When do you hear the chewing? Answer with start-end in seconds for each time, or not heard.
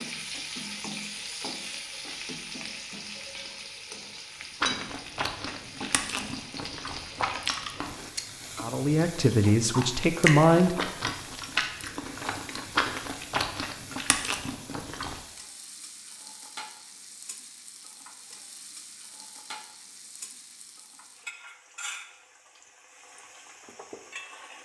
4.6-15.2.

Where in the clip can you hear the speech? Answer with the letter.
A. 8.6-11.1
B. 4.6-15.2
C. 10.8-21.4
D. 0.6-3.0
A.